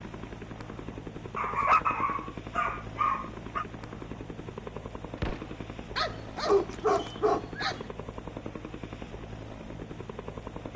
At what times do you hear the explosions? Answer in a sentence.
You can hear the explosions from 5.2 to 5.7 s.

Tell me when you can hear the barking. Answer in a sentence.
You can hear the barking from 1.4 to 3.6 s and from 6.0 to 7.8 s.